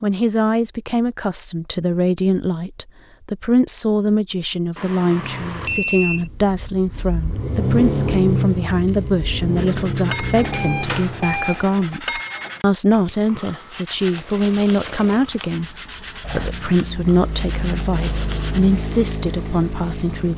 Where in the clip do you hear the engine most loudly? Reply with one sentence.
The volume of the engine peaks at 8 seconds.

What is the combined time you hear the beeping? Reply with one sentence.
You can hear the beeping for 3 seconds altogether.